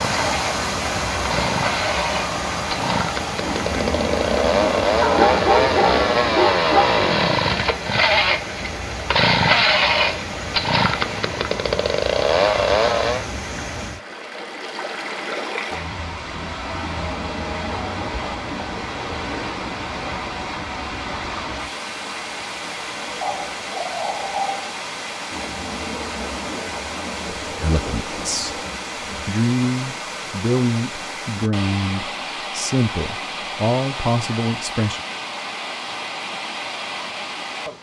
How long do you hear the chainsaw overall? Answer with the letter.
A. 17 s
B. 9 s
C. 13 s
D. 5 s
C.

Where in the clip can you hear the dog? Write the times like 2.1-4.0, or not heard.
5.0-7.0, 23.2-24.8.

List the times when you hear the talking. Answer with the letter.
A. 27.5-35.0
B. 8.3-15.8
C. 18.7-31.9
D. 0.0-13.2
A.